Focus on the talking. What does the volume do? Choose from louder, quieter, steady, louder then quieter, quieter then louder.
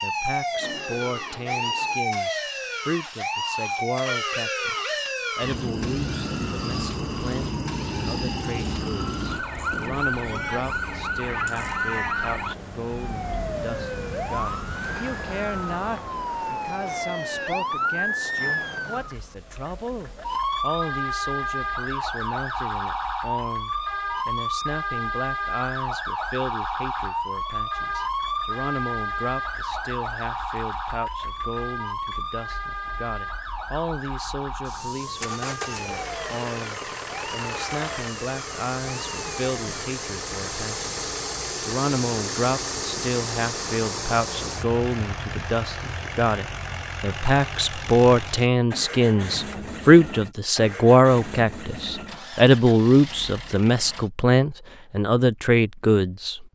louder.